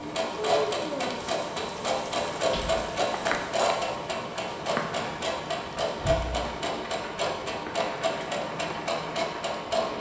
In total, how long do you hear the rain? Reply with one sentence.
You can hear the rain for 10 seconds altogether.